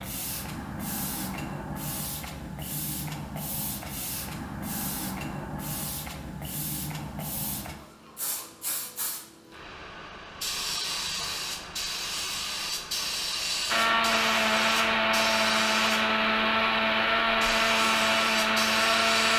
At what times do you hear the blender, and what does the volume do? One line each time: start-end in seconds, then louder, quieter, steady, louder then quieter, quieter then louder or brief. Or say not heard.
13.7-19.3 steady.